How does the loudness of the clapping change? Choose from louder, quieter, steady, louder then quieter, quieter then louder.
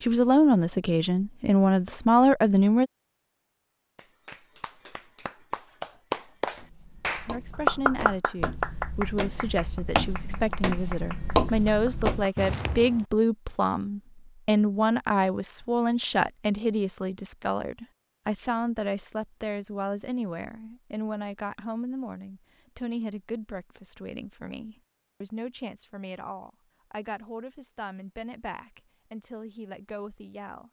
louder then quieter.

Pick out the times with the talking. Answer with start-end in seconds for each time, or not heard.
0.0-2.9, 7.2-30.6.